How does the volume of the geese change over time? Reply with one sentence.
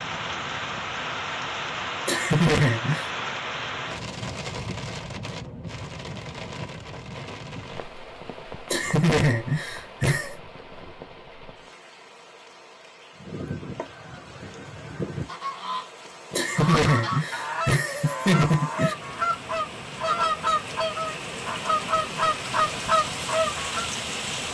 The loudness of the geese goes up.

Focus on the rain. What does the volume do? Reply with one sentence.
The loudness of the rain goes down, then up.